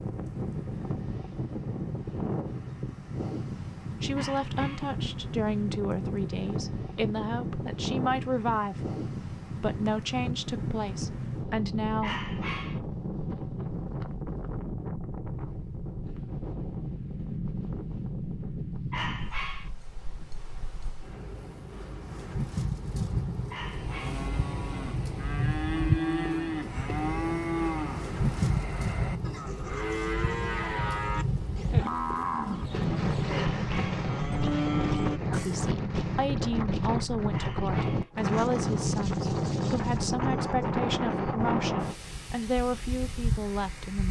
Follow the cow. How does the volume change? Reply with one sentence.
The volume of the cow stays about the same.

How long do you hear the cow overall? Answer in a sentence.
You can hear the cow for 12 seconds altogether.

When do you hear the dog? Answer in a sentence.
You can hear the dog from 4.2 to 5.0 s, from 12.0 to 12.8 s, from 18.9 to 19.7 s, from 23.5 to 24.3 s, from 33.2 to 34.1 s and from 37.3 to 38.1 s.